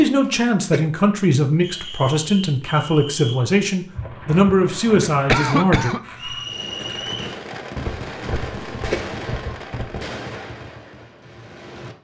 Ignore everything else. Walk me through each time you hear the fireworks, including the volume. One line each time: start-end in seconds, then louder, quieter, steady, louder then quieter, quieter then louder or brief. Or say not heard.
6.4-11.9 quieter.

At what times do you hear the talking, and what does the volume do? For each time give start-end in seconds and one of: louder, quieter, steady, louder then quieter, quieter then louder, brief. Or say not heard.
0.0-5.9 steady.